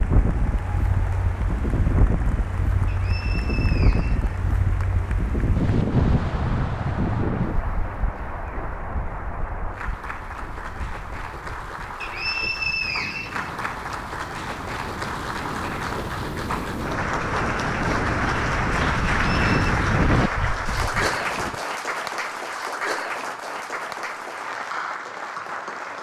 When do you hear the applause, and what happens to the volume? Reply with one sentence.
You can hear the applause from 0.0 to 25.9 s, getting louder.